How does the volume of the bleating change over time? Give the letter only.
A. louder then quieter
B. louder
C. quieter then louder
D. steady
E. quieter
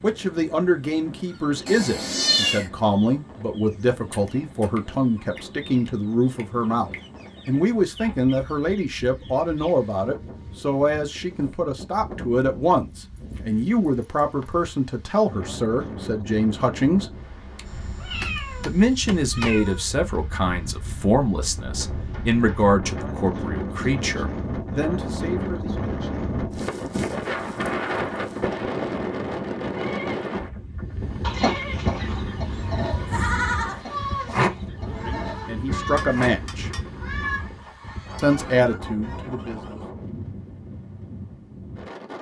A.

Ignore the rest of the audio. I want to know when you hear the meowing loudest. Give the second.
2 s.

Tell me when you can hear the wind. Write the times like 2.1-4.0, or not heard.
0.0-42.1.